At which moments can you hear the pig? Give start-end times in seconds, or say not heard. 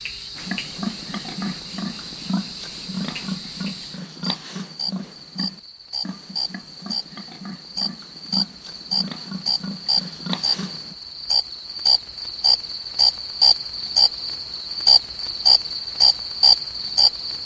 0.3-10.9.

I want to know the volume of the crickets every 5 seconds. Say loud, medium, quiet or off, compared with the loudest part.
quiet, medium, loud, loud.